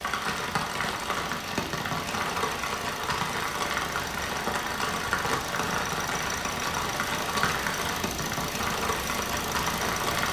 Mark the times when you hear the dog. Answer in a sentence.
You can't hear the dog here.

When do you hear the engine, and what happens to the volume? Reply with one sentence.
The engine can be heard from 0.0 to 10.2 s, getting louder.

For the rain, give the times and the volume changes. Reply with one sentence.
You can hear the rain from 0.0 to 10.2 s, at a steady volume.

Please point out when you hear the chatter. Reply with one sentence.
You can't hear the chatter here.